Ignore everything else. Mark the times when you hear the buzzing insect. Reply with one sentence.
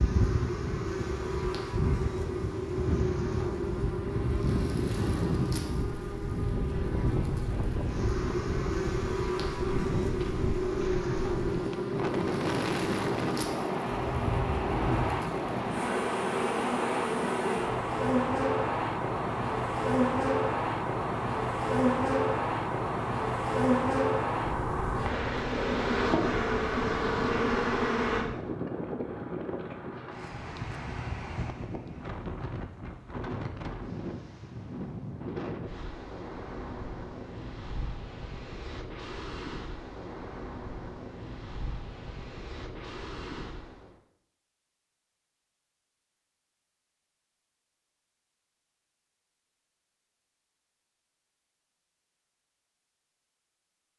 You can hear the buzzing insect from 0.0 to 28.2 s.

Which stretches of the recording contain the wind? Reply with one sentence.
The wind can be heard from 0.0 to 44.0 s.